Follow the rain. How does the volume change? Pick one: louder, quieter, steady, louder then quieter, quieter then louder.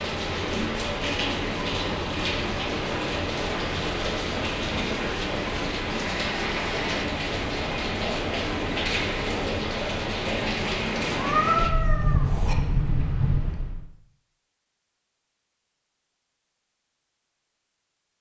steady.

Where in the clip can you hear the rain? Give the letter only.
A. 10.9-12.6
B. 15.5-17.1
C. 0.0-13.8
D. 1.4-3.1
C.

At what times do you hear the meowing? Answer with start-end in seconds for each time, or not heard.
10.9-12.6.